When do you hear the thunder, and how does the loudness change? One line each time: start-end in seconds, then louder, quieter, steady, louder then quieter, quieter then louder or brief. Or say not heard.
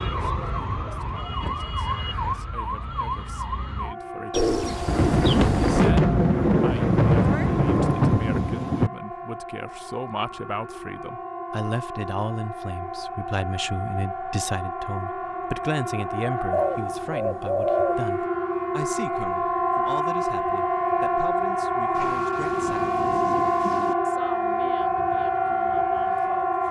4.8-8.9 steady
21.9-23.9 brief.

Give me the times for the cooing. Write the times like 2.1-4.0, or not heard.
4.3-6.0, 16.5-18.0.